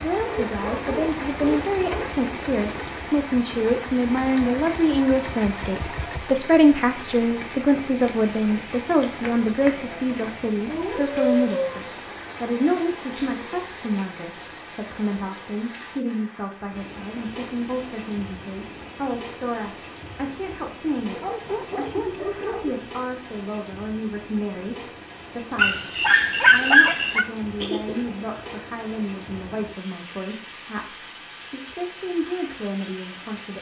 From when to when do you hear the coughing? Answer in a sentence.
You can hear the coughing from 27.6 to 28.2 s.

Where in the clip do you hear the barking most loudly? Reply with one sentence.
The volume of the barking peaks at 27 seconds.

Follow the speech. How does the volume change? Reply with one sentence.
The volume of the speech goes down.